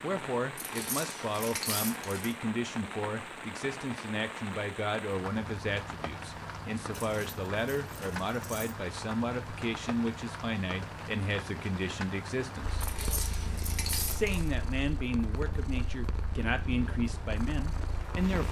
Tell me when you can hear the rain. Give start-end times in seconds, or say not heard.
0.0-18.4.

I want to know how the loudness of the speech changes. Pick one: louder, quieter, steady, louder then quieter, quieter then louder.
steady.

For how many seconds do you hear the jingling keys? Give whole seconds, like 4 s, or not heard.
5 s.